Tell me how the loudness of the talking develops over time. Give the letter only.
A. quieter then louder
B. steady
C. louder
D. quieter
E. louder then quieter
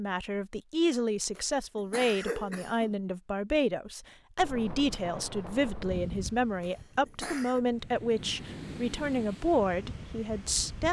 B.